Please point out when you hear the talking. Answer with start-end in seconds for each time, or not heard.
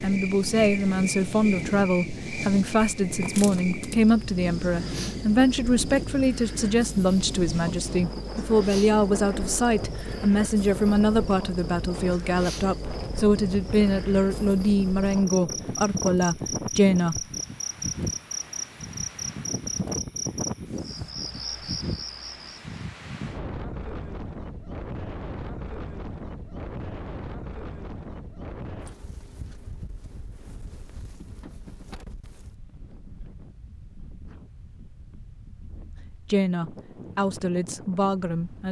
0.0-17.2, 36.0-38.6.